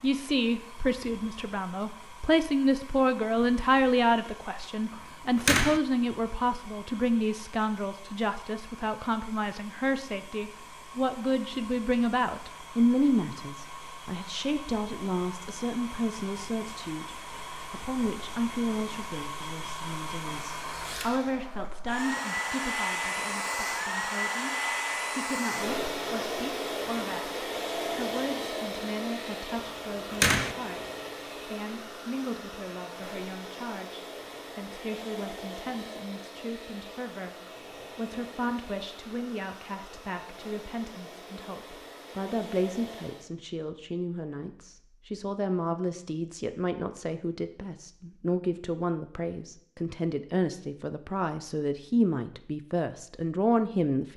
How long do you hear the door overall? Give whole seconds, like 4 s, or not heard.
2 s.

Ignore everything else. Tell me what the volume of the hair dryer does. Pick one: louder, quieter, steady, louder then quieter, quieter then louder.
louder then quieter.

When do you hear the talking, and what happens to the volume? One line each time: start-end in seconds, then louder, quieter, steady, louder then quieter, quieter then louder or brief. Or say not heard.
0.0-54.1 quieter then louder.